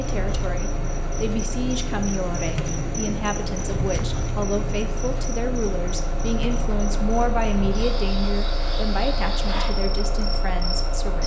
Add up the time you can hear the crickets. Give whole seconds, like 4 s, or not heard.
11 s.